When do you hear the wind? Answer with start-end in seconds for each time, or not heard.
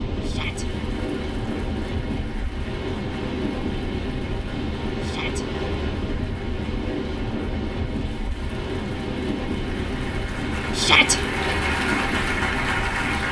0.0-13.2.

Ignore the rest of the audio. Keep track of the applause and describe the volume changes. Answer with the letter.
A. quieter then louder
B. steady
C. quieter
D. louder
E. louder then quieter
D.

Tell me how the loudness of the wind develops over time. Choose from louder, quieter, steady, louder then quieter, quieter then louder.
steady.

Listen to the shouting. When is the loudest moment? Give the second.
11 s.